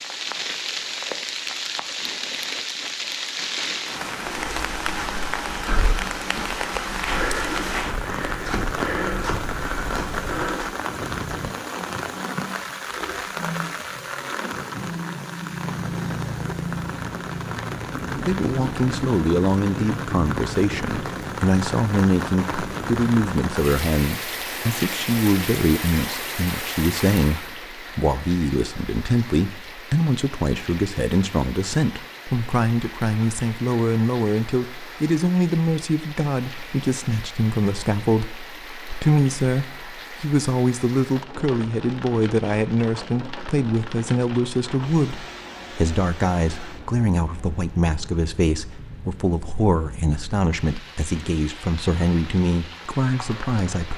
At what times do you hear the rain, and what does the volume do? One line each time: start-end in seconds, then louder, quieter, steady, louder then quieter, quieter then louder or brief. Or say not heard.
0.0-53.9 quieter.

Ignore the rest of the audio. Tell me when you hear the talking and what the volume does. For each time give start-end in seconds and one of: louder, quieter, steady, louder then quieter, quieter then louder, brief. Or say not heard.
18.2-53.9 steady.